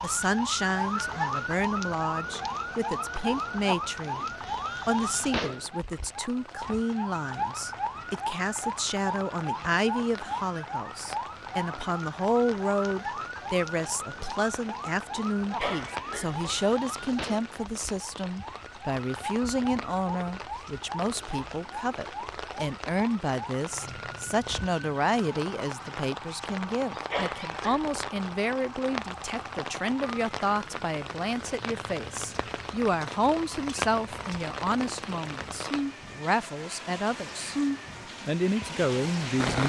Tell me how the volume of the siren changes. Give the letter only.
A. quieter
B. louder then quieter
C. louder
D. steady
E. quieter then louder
A.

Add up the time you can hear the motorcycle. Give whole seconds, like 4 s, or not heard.
not heard.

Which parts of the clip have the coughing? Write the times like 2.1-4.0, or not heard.
15.6-16.4, 27.1-28.0.